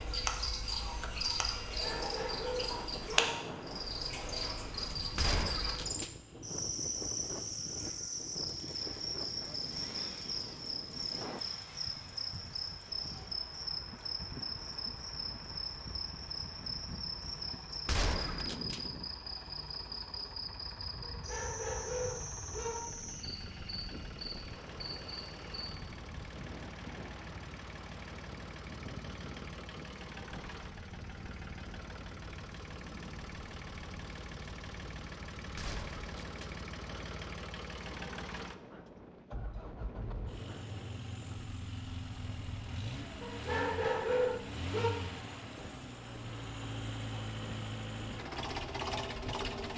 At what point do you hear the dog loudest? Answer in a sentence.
The volume of the dog peaks at 44 seconds.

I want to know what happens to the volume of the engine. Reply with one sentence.
The loudness of the engine goes up.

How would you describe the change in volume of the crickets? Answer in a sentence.
The volume of the crickets goes down.